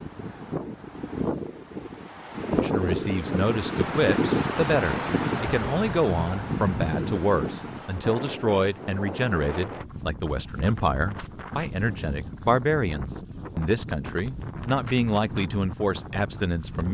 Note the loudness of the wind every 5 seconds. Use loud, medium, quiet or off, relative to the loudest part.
loud, loud, medium, medium.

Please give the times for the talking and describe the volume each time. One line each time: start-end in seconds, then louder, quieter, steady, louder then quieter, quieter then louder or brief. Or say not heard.
2.5-16.8 steady.